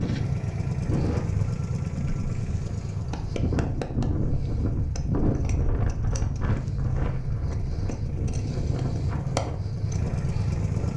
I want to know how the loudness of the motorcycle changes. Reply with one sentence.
The loudness of the motorcycle goes down, then up.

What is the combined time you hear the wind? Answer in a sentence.
The wind can be heard for 11 seconds in total.